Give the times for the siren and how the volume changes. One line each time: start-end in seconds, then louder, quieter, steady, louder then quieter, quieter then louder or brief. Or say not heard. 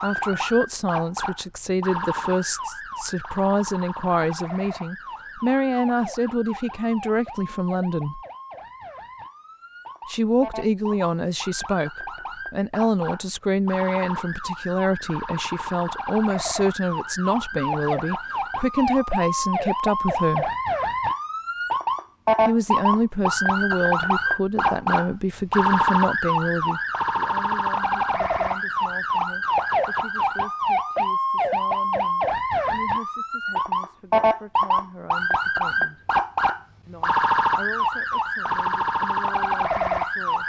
0.0-40.4 louder.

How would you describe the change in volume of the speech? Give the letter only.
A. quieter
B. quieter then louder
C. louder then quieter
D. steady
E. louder
A.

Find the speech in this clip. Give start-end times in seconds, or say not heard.
0.0-8.2, 10.1-20.5, 22.4-36.0, 36.9-40.4.